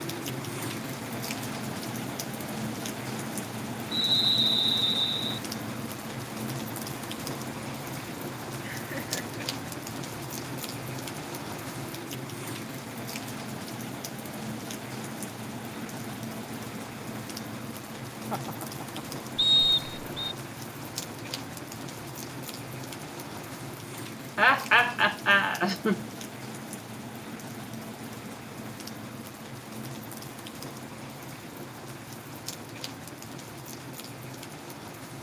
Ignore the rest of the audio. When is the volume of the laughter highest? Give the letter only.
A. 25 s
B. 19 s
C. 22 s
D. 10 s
A.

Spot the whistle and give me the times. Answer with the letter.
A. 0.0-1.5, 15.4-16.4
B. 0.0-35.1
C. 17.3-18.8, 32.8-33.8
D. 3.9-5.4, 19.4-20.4
D.